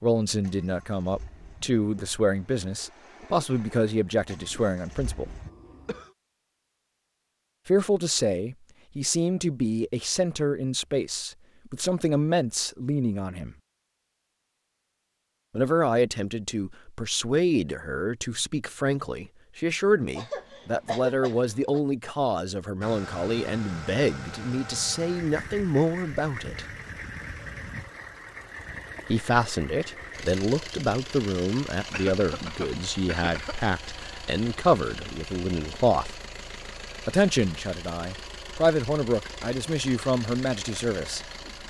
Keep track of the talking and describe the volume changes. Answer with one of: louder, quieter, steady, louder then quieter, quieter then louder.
steady.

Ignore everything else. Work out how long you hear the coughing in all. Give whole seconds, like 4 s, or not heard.
4 s.